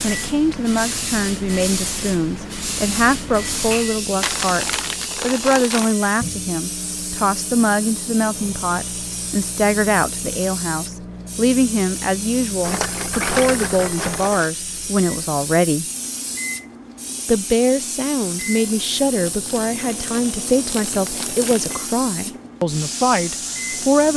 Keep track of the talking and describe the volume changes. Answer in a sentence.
The volume of the talking stays about the same.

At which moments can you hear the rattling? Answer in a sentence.
You can hear the rattling from 12.6 to 14.5 s.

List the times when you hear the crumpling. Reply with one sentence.
You can hear the crumpling from 4.2 to 6.0 s and from 19.2 to 21.8 s.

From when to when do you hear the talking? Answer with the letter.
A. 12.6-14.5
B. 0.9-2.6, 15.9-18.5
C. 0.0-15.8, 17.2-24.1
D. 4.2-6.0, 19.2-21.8
C.